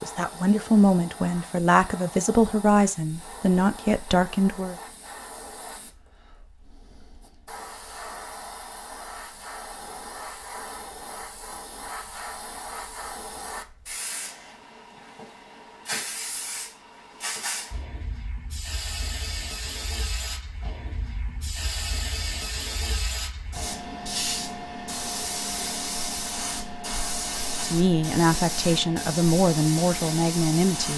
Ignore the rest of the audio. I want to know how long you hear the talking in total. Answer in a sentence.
The talking can be heard for 8 seconds in total.